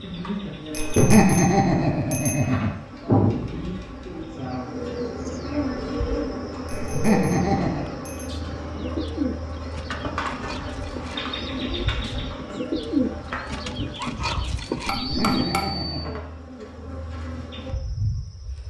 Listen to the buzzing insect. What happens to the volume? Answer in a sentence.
The loudness of the buzzing insect goes down.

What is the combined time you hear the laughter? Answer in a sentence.
The laughter can be heard for 4 seconds in total.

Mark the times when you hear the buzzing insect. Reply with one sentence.
You can hear the buzzing insect from 0.0 to 18.6 s.